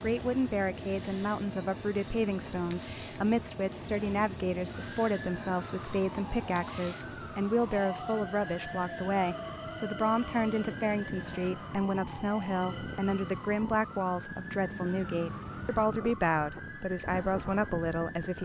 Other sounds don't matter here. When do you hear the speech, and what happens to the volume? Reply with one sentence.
You can hear the speech from 0.0 to 18.4 s, at a steady volume.